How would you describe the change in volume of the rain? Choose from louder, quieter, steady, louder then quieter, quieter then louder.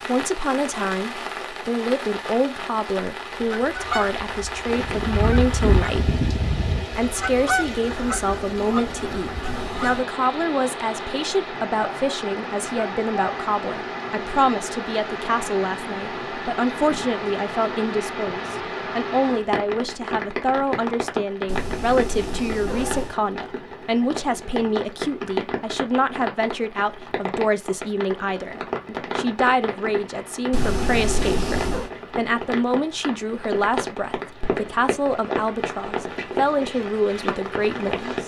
steady.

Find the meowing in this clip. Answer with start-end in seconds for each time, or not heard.
9.4-10.1, 21.4-23.1, 30.5-31.9.